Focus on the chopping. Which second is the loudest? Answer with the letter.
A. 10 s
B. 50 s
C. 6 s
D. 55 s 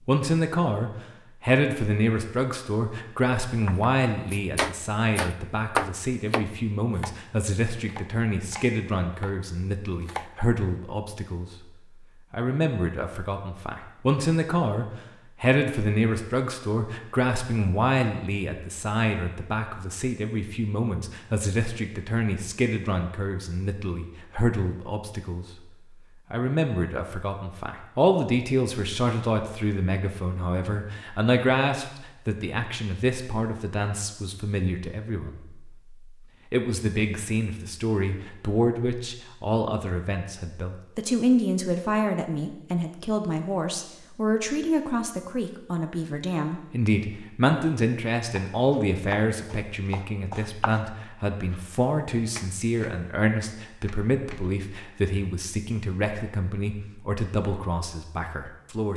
C.